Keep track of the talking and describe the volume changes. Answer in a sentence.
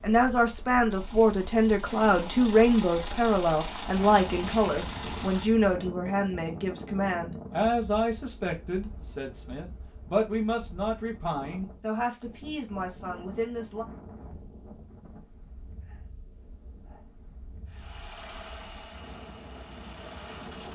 The volume of the talking goes down.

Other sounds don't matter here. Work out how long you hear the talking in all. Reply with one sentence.
You can hear the talking for 14 seconds altogether.